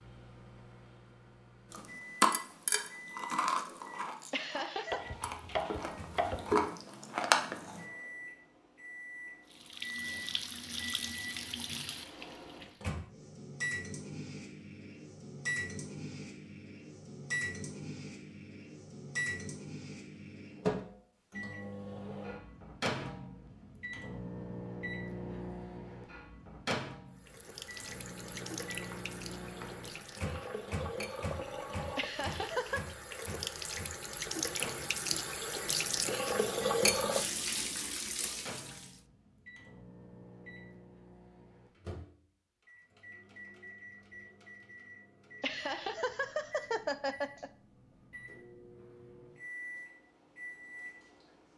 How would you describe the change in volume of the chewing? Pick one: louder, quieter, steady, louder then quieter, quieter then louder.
quieter then louder.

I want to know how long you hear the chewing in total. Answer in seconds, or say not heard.
6 s.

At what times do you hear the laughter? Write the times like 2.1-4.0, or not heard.
4.3-5.0, 31.9-32.8, 45.4-47.5.